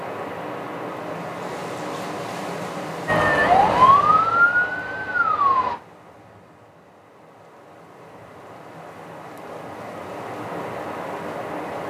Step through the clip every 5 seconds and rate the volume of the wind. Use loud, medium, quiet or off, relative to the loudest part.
loud, medium, loud.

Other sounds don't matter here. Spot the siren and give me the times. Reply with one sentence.
You can hear the siren from 3.0 to 5.8 s.